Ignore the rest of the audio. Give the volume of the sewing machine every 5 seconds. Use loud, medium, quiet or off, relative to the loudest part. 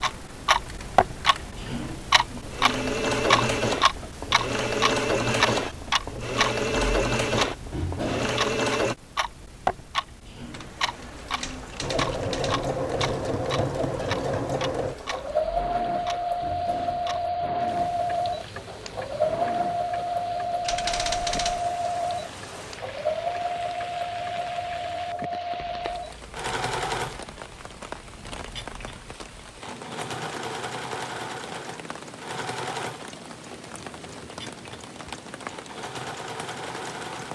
loud, loud, loud, loud, loud, medium, medium, medium.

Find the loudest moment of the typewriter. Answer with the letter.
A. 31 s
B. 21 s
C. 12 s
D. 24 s
B.